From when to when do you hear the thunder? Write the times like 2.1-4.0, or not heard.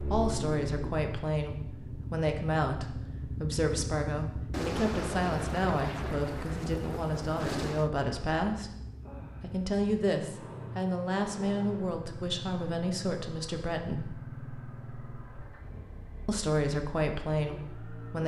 4.5-7.9.